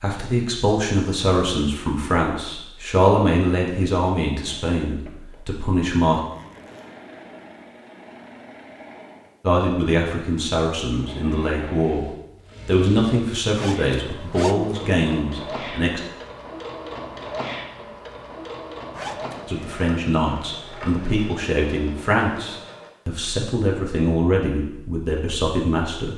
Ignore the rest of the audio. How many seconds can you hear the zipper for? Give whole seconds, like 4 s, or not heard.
3 s.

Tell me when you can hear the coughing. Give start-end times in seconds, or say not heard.
not heard.